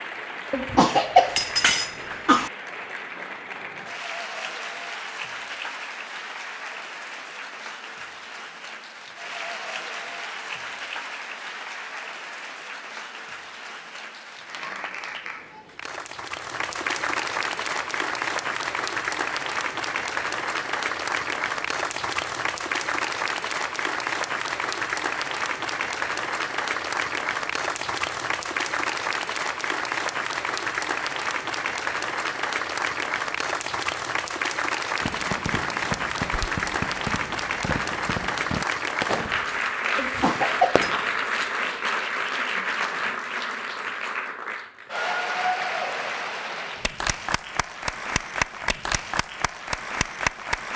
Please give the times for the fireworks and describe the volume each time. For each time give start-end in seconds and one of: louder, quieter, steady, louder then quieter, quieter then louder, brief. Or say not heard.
35.0-41.7 steady.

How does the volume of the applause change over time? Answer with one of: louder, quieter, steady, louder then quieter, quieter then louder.
louder.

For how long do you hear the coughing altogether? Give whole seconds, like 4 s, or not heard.
3 s.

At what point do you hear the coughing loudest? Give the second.
1 s.